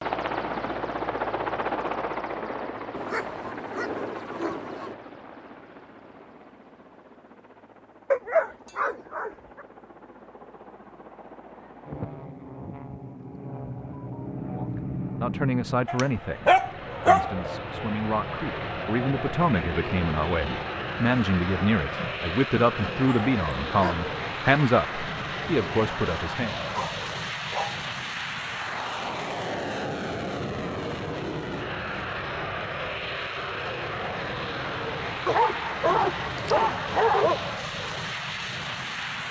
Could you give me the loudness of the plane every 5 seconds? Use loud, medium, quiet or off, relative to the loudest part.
loud, quiet, medium, loud, loud, loud, loud, loud.